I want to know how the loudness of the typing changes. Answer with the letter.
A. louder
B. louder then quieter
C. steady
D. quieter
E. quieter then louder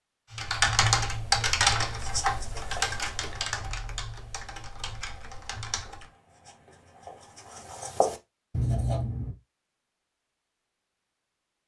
D.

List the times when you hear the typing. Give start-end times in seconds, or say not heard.
0.3-6.1.